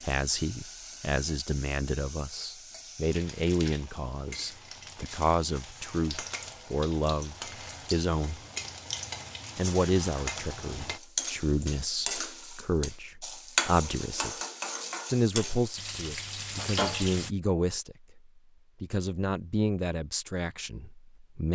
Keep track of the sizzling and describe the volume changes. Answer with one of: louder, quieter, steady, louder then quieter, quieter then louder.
louder.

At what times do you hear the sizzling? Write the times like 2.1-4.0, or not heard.
0.0-17.3.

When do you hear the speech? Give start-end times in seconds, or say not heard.
0.0-8.4, 9.6-14.3, 15.1-18.2, 18.8-21.4.